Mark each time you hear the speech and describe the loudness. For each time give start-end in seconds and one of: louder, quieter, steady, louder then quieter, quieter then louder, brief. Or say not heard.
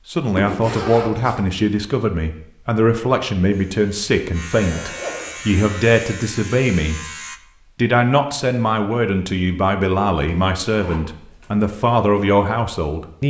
0.1-13.2 steady.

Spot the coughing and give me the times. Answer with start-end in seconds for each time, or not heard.
not heard.